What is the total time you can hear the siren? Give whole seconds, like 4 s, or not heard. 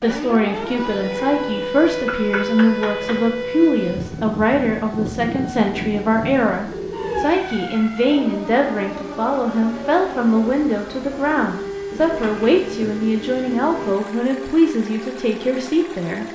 16 s.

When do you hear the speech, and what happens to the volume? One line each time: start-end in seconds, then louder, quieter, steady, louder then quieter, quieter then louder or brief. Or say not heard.
0.0-16.2 steady.